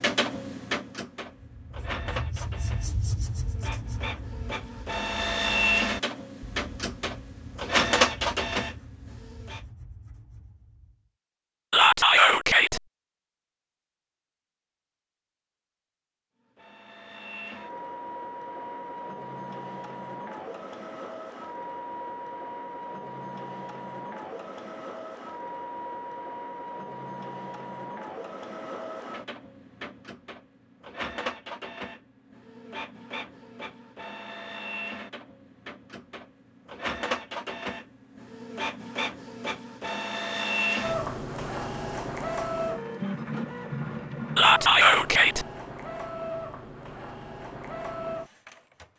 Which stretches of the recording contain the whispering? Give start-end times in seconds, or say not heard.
11.7-12.8, 44.4-45.5.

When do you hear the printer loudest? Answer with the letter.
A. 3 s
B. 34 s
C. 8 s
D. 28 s
C.